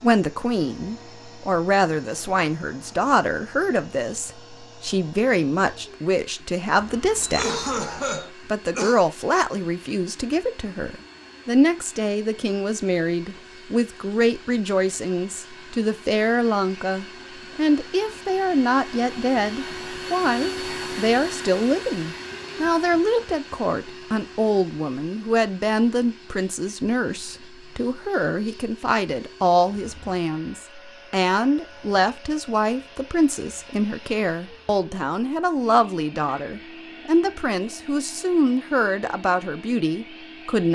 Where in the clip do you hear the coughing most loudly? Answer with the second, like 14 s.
8 s.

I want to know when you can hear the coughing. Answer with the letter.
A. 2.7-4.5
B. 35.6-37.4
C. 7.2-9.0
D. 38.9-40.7
C.